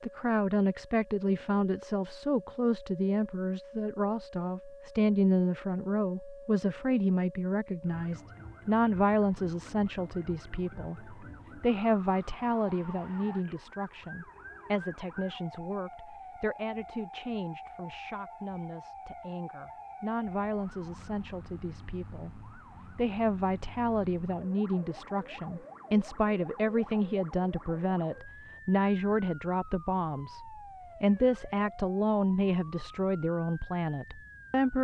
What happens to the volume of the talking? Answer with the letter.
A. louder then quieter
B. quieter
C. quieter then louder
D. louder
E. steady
C.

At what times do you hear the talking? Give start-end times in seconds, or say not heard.
0.0-34.7.